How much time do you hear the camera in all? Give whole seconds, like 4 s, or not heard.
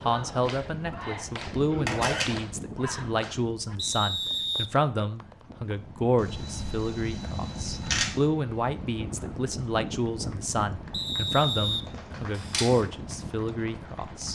3 s.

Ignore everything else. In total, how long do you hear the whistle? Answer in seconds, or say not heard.
2 s.